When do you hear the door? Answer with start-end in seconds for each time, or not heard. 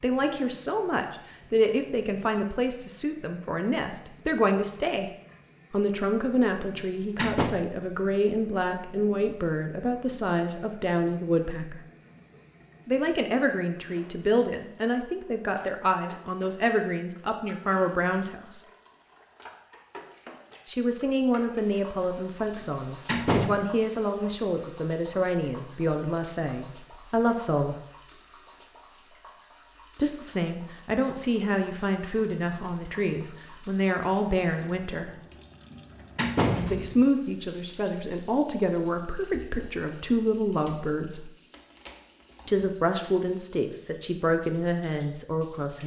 6.7-7.5, 22.6-23.5, 35.7-37.0.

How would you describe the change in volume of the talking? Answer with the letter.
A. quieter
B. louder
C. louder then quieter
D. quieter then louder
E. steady
E.